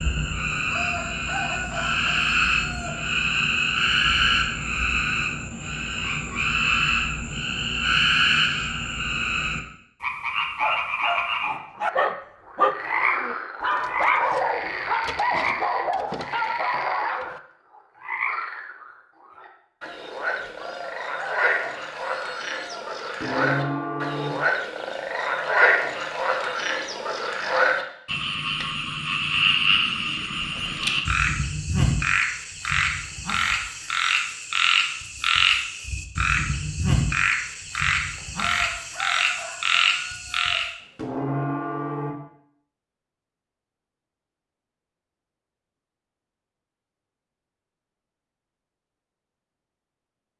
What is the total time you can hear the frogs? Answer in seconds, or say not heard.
41 s.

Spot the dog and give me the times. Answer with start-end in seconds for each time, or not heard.
10.6-17.4.